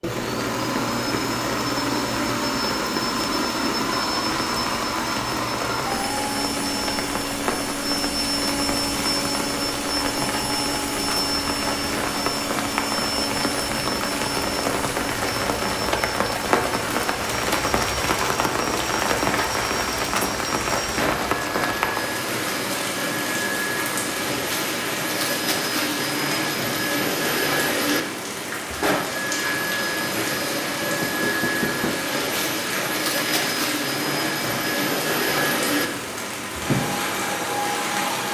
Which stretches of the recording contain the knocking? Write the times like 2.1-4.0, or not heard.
30.9-32.0.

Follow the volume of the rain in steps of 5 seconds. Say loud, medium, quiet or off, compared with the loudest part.
medium, medium, loud, loud, loud, medium, medium, medium.